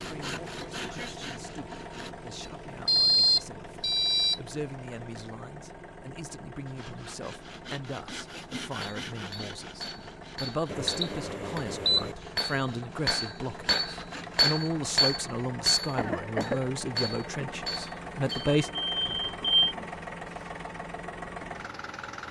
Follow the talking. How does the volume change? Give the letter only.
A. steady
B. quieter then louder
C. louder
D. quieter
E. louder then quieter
C.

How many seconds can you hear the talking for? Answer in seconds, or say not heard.
19 s.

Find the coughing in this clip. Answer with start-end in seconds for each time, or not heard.
15.9-16.6.